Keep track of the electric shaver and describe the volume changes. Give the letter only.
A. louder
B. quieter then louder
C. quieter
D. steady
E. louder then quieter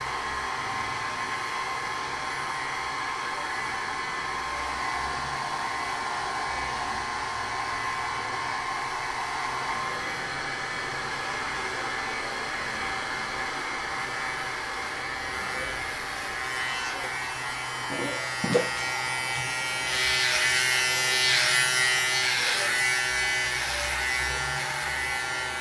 A.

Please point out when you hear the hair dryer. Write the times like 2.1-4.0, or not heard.
0.0-25.5.